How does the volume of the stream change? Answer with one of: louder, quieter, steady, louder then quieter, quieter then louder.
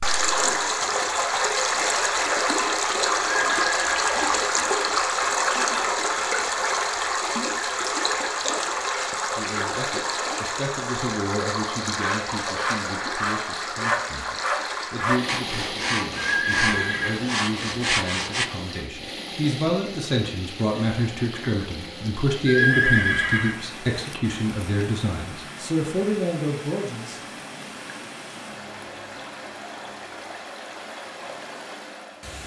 quieter.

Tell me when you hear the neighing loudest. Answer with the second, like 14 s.
23 s.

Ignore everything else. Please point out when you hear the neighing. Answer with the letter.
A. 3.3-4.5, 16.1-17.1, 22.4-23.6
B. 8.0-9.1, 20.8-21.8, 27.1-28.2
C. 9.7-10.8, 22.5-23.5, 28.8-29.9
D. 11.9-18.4
A.